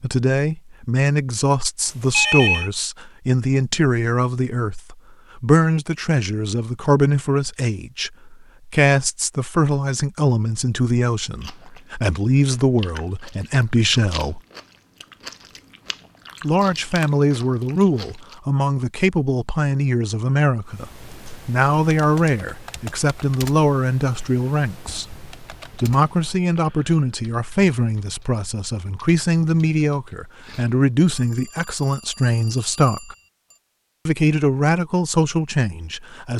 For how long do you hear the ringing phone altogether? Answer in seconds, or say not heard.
3 s.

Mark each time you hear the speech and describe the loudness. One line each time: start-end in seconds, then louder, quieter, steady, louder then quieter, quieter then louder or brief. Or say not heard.
0.0-14.4 steady
16.4-33.1 steady
34.0-36.3 brief.